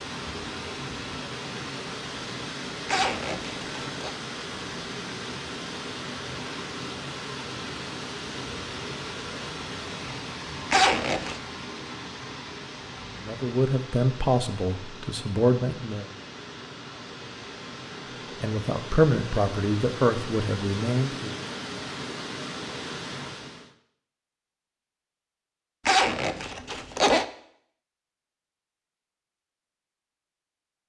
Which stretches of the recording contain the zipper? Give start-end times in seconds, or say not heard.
2.9-4.2, 10.7-11.4, 25.9-27.2.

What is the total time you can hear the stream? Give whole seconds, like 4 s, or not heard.
24 s.